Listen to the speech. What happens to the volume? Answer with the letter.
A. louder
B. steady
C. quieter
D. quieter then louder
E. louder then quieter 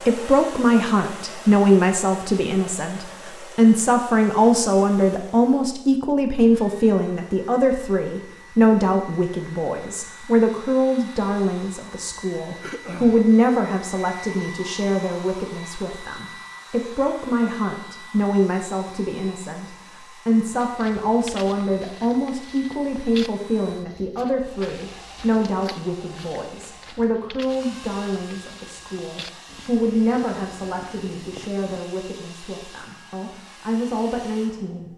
C.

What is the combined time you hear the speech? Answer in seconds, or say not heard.
35 s.